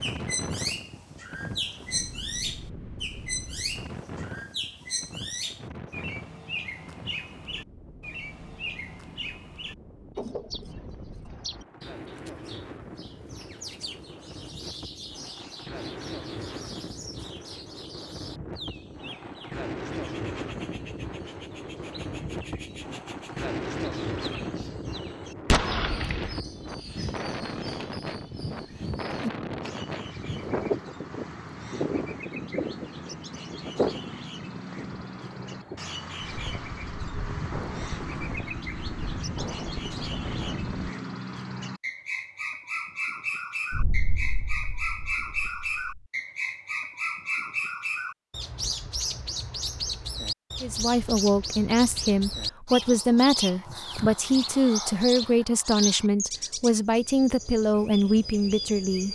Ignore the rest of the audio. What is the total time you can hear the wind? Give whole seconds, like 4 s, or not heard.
41 s.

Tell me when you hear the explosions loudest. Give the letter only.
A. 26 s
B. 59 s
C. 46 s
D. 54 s
A.